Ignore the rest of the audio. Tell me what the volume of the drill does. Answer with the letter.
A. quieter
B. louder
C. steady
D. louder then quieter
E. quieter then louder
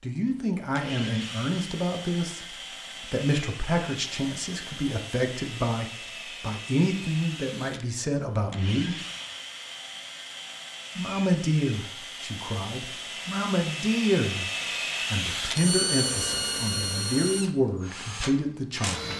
B.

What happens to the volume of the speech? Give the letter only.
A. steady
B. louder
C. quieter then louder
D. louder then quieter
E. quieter
A.